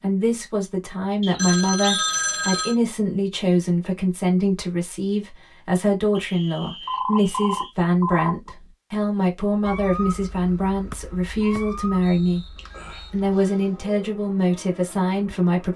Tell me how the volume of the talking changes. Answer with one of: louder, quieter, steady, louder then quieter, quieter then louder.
steady.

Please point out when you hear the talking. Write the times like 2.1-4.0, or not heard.
0.0-15.7.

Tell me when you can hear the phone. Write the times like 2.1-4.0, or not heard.
1.4-2.8, 6.8-8.5, 12.6-13.8.